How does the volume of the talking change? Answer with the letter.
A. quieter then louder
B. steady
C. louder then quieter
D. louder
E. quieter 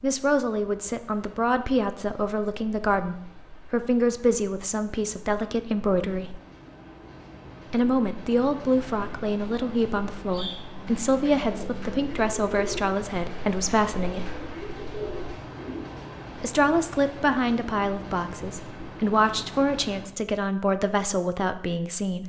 B.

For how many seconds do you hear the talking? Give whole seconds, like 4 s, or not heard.
19 s.